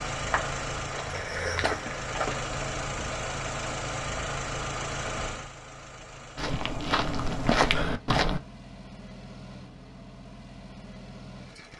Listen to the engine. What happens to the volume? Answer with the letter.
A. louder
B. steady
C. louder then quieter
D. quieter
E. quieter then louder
D.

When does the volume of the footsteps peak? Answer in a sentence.
The loudest moment of the footsteps is at 8 seconds.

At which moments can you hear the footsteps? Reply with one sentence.
The footsteps can be heard from 0.1 to 2.5 s and from 6.3 to 8.4 s.